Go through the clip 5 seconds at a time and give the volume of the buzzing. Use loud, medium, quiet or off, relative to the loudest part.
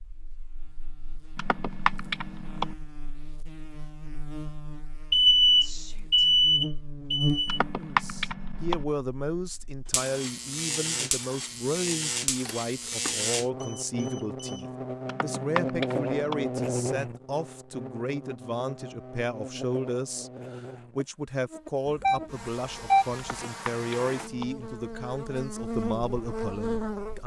quiet, loud, loud, loud, medium, loud.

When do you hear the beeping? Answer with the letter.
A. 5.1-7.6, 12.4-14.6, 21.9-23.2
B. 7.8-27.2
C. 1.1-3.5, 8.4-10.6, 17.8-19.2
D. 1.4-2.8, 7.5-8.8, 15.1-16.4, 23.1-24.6
A.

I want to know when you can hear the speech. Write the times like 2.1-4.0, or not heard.
7.8-27.2.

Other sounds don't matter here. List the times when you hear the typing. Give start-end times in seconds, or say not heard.
1.4-2.8, 7.5-8.8, 15.1-16.4, 23.1-24.6.